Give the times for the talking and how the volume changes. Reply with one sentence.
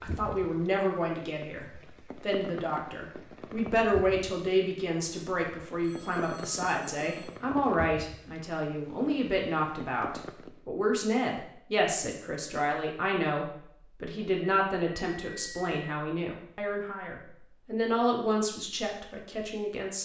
The talking can be heard from 0.0 to 20.0 s, at a steady volume.